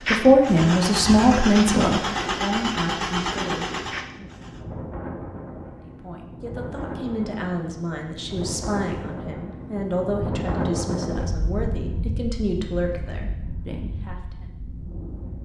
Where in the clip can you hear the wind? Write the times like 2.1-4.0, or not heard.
0.0-15.4.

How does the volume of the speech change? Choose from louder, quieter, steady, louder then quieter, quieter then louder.
quieter.